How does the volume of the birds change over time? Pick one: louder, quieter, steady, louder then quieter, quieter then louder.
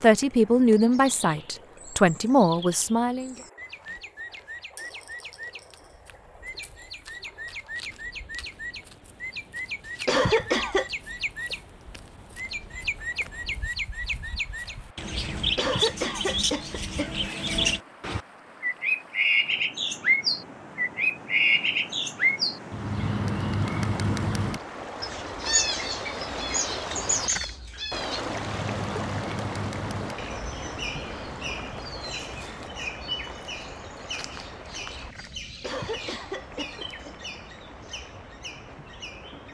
louder then quieter.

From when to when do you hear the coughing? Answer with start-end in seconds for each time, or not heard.
10.1-10.8, 15.6-17.1, 35.6-37.1.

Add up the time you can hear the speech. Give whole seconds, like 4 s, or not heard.
3 s.